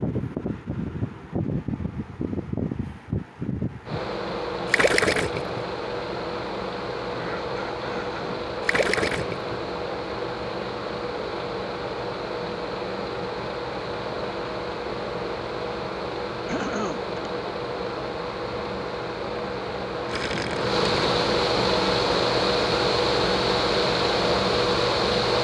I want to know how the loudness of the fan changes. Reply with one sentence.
The loudness of the fan goes up.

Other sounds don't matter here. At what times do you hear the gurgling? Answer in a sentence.
The gurgling can be heard from 4.7 to 5.8 s, from 8.7 to 9.8 s and from 20.1 to 21.2 s.